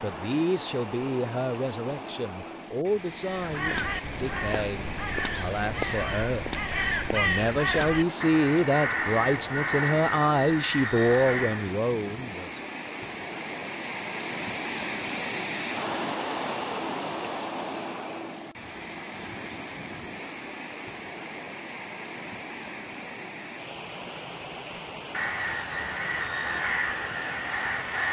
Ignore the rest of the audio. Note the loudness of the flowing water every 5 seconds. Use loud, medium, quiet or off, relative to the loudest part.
medium, medium, loud, loud, medium, medium.